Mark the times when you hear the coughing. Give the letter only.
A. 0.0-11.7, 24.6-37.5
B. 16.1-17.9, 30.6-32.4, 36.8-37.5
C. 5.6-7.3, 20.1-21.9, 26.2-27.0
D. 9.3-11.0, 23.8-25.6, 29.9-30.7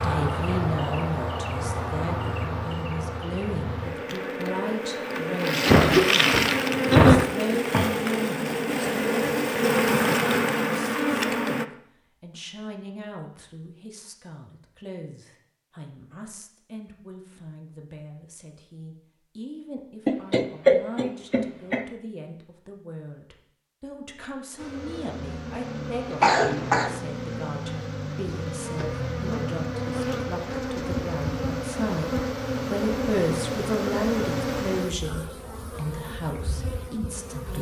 C.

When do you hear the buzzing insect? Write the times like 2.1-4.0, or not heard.
0.0-11.7, 24.6-37.5.